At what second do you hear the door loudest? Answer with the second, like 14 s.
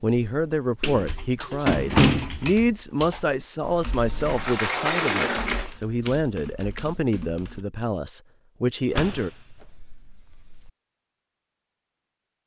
2 s.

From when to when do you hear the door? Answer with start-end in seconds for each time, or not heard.
0.8-2.4, 4.2-5.8, 8.9-10.7.